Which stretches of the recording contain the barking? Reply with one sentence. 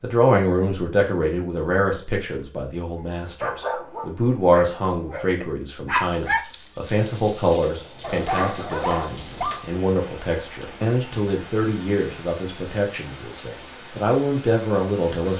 The barking can be heard from 3.0 to 9.7 s.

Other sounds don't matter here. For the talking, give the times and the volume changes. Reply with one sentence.
You can hear the talking from 0.0 to 15.3 s, at a steady volume.